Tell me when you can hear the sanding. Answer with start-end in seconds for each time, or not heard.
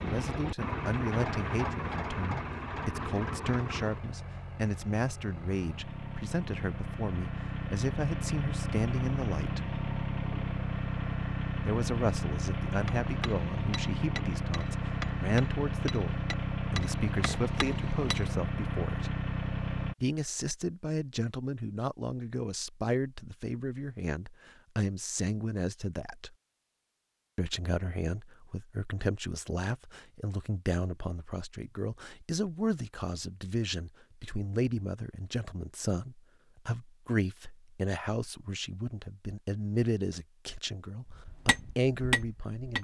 not heard.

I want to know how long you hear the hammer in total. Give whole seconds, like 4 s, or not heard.
7 s.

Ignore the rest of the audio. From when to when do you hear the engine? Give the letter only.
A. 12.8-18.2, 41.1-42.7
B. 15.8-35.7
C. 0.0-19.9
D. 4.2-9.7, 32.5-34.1
C.